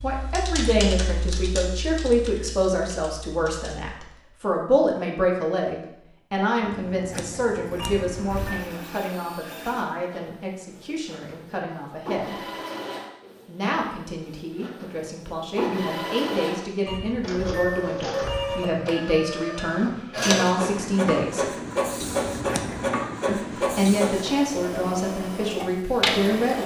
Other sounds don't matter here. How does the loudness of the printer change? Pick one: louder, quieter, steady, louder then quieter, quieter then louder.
louder.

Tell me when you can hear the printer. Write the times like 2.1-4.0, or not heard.
8.2-26.6.